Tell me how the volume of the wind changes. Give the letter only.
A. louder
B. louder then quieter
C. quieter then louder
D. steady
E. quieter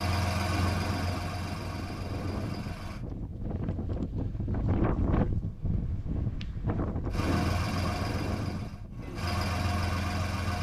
B.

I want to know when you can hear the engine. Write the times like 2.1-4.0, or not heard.
0.0-3.0, 7.1-10.5.